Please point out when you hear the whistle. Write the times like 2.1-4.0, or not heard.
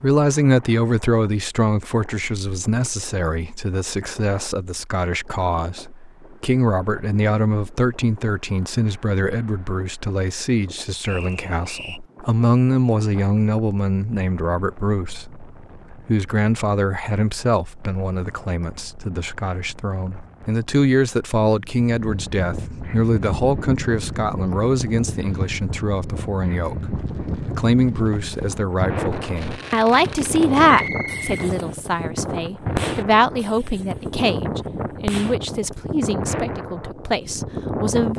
11.1-12.0, 30.6-31.5.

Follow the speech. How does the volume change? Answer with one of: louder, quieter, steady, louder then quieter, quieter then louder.
steady.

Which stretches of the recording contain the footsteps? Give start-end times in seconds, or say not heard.
not heard.